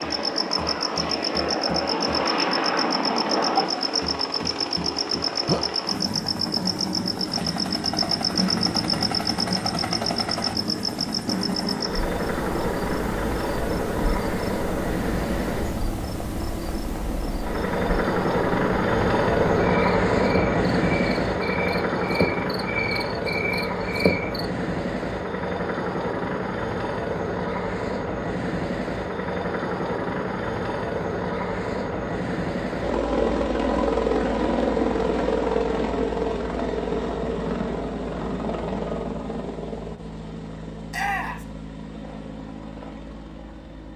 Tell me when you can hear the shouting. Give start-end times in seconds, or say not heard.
40.9-41.5.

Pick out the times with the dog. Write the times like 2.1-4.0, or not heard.
not heard.